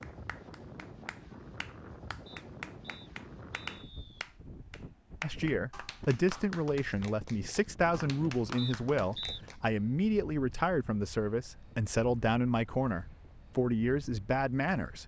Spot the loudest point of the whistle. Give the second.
9 s.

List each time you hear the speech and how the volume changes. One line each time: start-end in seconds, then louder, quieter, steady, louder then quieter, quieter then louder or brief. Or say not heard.
5.2-15.0 steady.